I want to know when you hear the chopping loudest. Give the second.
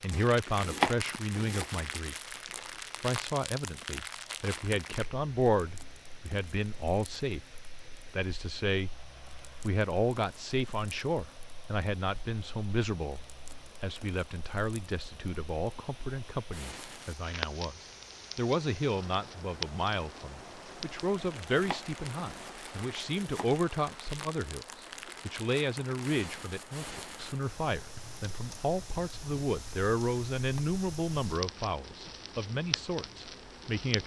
1 s.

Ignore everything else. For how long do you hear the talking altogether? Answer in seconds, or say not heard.
32 s.